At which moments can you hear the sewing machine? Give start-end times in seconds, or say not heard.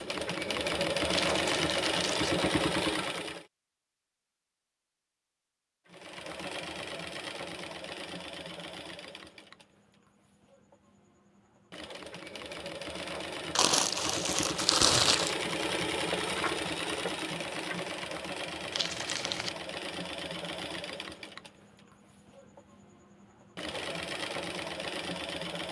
0.0-3.5, 5.8-25.6.